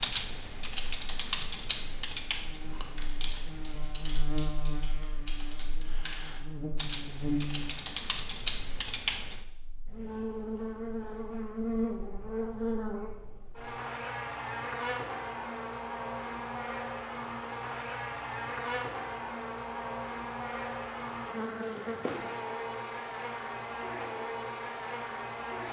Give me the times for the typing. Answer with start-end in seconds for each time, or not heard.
0.0-9.4.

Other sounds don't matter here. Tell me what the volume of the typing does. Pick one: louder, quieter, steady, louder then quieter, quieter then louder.
quieter then louder.